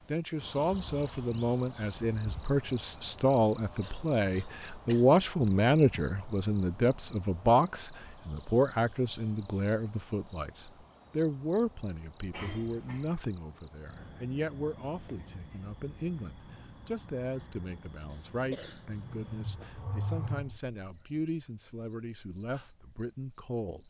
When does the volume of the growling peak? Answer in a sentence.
The volume of the growling peaks at 20 seconds.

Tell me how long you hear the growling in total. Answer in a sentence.
You can hear the growling for 2 seconds altogether.